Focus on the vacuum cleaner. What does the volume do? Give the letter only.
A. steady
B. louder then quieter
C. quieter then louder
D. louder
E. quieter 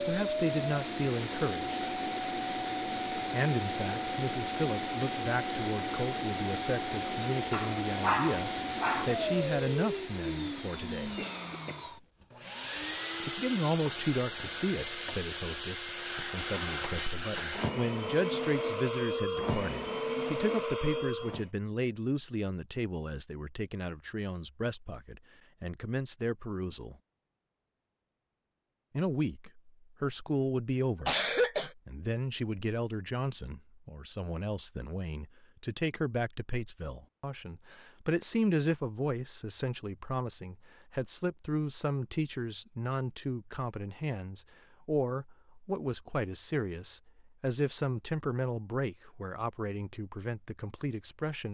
A.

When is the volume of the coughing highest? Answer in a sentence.
The volume of the coughing peaks at 31 seconds.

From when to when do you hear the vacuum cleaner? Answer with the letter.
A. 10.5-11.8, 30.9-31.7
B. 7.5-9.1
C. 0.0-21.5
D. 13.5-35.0
C.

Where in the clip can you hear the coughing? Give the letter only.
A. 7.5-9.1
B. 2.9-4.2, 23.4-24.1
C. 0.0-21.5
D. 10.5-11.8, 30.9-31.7
D.